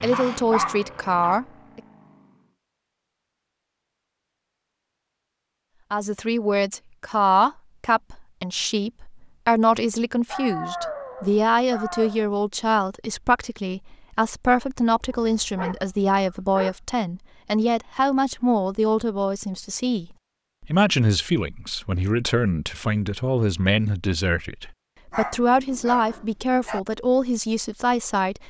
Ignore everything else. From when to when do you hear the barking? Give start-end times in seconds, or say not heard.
0.1-1.4, 10.2-12.3, 15.2-16.8, 25.1-26.8.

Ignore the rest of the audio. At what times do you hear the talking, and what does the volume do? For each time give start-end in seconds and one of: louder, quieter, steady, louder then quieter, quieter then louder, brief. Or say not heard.
0.0-1.8 brief
5.9-28.4 steady.